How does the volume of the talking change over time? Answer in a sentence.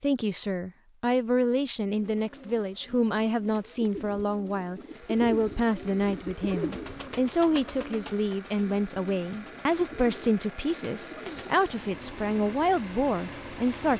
The volume of the talking stays about the same.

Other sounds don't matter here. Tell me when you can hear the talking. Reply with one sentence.
The talking can be heard from 0.0 to 13.9 s.